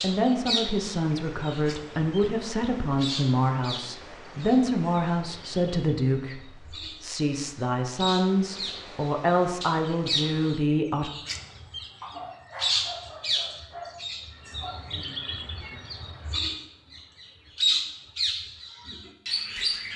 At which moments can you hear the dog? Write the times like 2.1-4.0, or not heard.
12.0-14.0.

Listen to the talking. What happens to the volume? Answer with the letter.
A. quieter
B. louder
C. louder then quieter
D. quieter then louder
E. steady
E.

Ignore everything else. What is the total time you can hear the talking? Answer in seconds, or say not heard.
11 s.